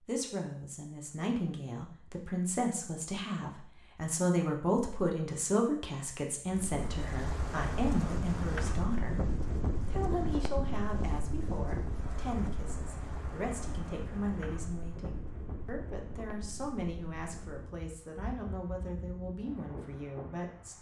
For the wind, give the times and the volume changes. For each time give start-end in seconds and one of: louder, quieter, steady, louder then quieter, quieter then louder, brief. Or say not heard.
6.5-20.7 quieter.